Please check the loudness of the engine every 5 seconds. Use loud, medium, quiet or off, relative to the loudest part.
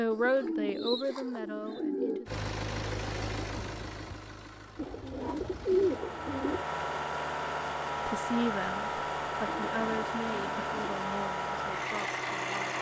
medium, loud, loud.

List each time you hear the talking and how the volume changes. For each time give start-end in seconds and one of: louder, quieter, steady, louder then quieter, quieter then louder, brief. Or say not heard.
0.0-2.4 brief
8.1-12.7 quieter.